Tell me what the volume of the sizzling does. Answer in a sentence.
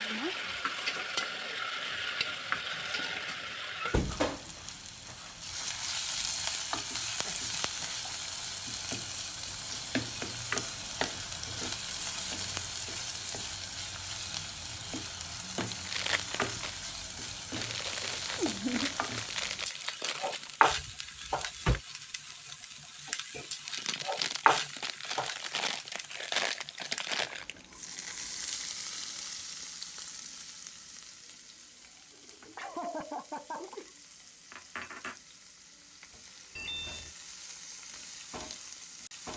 The volume of the sizzling goes down.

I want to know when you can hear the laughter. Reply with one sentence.
The laughter can be heard from 7.0 to 8.2 s, from 18.4 to 18.9 s and from 32.5 to 33.9 s.